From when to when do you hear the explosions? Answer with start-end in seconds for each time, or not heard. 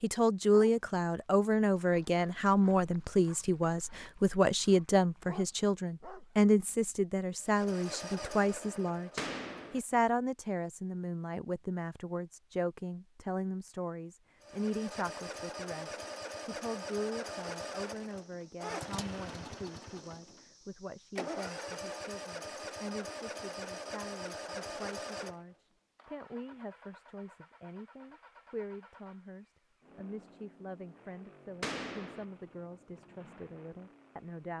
9.2-9.8, 31.6-32.2.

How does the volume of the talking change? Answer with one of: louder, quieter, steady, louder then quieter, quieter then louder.
quieter.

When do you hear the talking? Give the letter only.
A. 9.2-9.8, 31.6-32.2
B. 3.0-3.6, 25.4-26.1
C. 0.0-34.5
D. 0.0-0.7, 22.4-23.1
C.